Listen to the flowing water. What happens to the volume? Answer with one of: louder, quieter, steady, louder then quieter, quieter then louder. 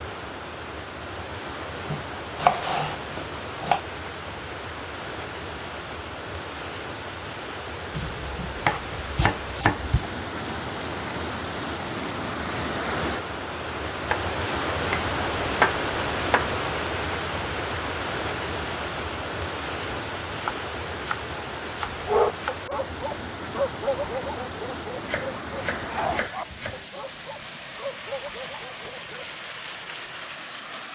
louder then quieter.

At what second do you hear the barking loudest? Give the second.
22 s.